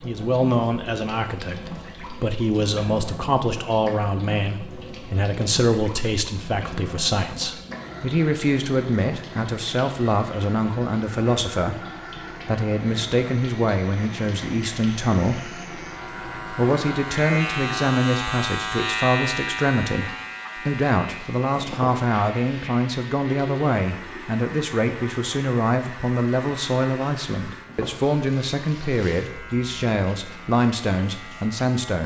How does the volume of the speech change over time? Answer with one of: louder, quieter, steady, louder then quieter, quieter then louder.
steady.